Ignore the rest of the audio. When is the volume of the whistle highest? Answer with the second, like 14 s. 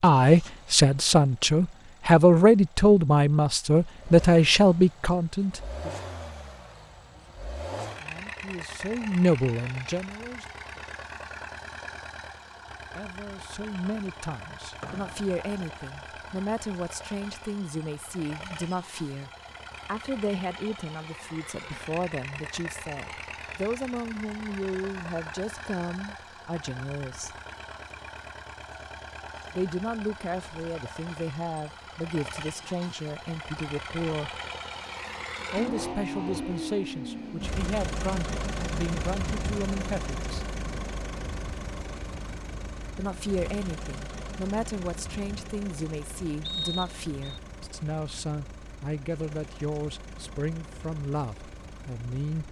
47 s.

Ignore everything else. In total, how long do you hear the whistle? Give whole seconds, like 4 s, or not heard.
2 s.